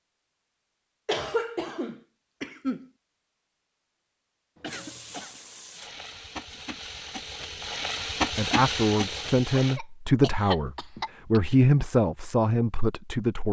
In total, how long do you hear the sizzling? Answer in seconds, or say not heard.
5 s.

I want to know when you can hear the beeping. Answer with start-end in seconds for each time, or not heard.
not heard.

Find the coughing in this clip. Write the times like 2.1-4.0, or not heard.
1.1-2.9, 4.5-5.4, 9.6-11.4.